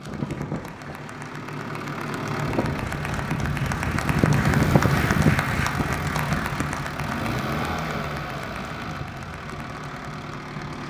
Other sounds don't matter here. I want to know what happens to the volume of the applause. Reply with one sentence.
The volume of the applause goes up, then down.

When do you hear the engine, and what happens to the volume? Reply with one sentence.
The engine can be heard from 0.0 to 10.8 s, getting louder then quieter.